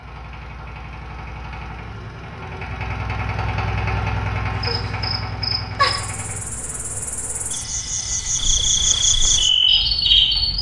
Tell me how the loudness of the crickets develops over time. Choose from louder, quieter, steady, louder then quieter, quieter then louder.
quieter then louder.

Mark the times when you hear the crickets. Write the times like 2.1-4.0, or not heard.
4.5-10.5.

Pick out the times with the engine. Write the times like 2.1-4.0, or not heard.
0.0-10.5.